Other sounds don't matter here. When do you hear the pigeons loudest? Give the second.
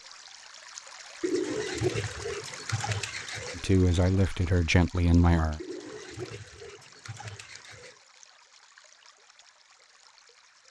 2 s.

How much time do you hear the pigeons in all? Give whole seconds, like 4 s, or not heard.
5 s.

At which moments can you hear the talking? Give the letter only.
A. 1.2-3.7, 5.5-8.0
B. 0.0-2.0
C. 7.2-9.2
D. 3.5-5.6
D.